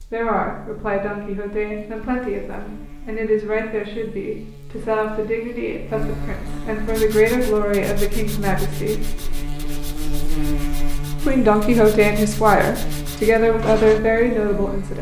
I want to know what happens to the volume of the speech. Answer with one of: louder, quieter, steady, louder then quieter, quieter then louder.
louder.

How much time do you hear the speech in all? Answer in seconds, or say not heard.
13 s.